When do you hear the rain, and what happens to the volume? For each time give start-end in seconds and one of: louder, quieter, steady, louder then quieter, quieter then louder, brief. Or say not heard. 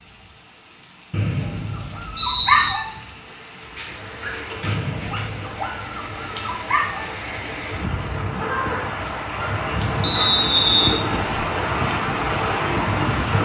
0.0-13.4 louder.